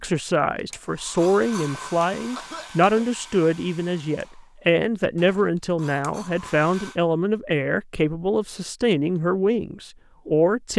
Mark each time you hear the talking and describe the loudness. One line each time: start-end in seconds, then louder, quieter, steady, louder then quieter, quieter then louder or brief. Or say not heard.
0.0-10.7 steady.